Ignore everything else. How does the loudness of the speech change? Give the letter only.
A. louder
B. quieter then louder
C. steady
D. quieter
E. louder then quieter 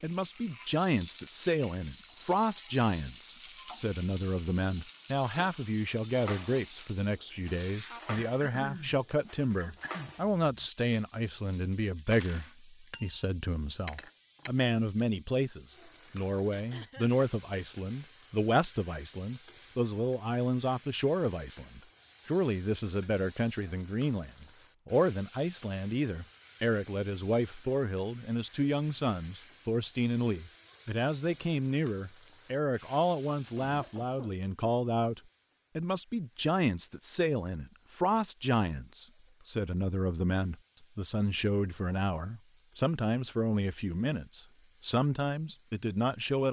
C.